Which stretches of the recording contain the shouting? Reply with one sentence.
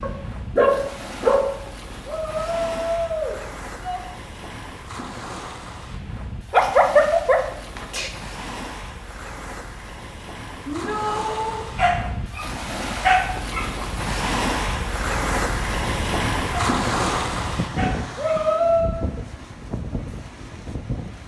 The shouting can be heard from 2.0 to 4.0 s, from 10.7 to 11.7 s and from 18.1 to 18.9 s.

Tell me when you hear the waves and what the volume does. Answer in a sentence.
You can hear the waves from 0.0 to 21.2 s, getting louder.